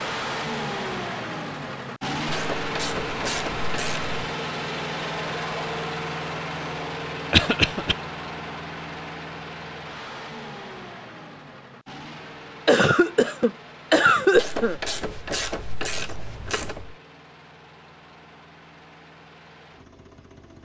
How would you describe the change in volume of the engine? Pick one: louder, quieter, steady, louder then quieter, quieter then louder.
quieter.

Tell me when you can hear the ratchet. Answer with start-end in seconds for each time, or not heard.
2.2-4.2, 14.3-16.9.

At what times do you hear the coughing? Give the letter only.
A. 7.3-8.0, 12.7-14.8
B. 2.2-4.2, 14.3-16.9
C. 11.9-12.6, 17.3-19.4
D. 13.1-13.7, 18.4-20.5
A.